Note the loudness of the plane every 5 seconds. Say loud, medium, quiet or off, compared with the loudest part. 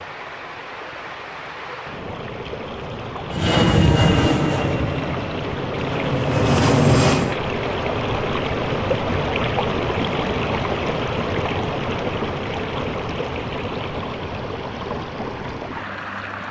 loud, loud, off, off.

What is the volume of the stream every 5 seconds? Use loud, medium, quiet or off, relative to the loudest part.
medium, loud, loud, medium.